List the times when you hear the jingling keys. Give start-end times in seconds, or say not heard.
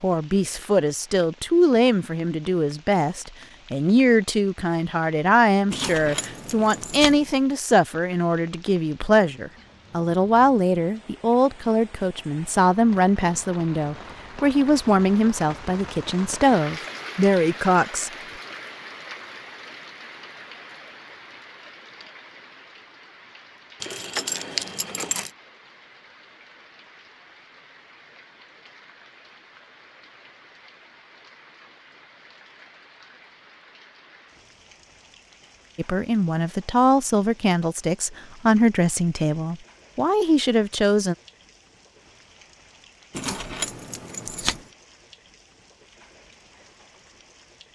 5.7-7.2, 23.8-25.3, 43.1-44.6.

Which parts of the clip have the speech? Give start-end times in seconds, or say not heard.
0.0-18.1, 35.8-41.1.